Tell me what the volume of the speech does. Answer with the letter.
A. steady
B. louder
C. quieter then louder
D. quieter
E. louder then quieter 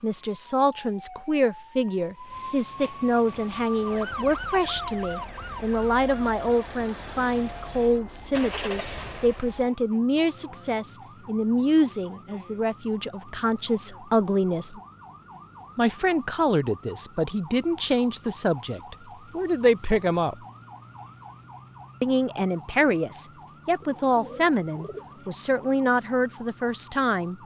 A.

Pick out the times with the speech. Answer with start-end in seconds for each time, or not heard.
0.0-14.8, 15.8-20.4, 22.0-27.3.